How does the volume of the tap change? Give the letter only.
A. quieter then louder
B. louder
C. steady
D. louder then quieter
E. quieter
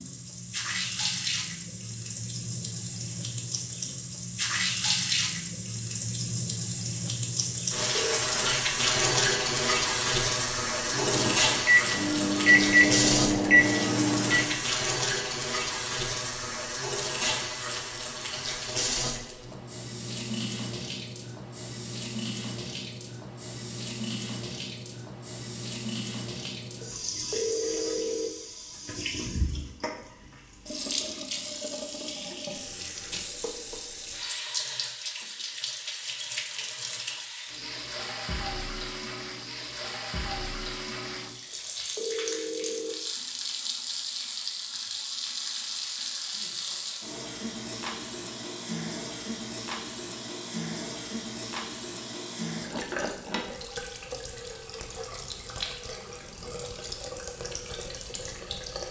E.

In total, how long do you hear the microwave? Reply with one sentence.
You can hear the microwave for 4 seconds altogether.